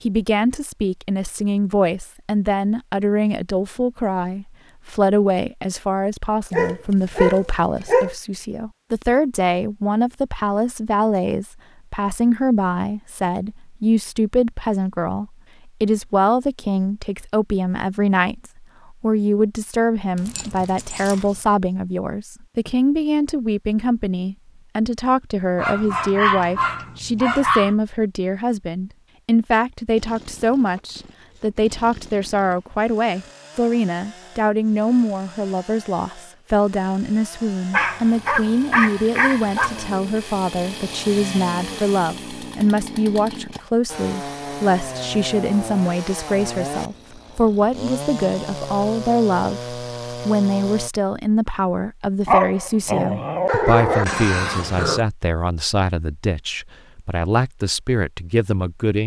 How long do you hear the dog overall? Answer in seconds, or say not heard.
10 s.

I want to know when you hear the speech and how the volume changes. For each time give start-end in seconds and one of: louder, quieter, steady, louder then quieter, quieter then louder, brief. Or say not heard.
0.0-59.0 steady.